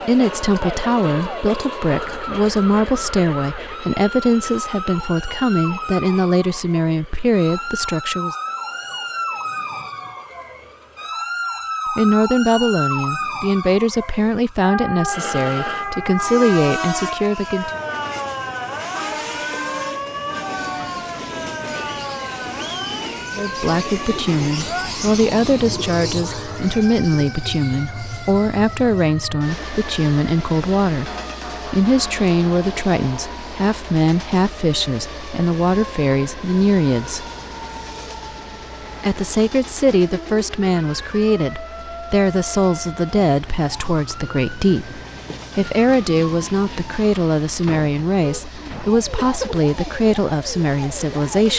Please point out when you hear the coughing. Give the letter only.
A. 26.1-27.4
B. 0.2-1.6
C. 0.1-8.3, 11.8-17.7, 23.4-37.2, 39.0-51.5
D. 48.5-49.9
D.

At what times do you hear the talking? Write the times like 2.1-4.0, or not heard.
0.1-8.3, 11.8-17.7, 23.4-37.2, 39.0-51.5.